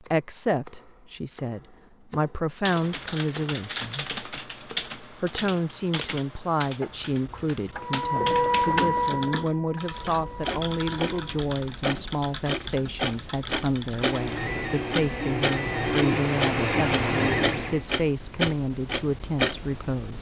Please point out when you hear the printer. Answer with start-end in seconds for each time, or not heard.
7.8-11.3, 14.0-17.9.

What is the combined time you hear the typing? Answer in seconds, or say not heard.
12 s.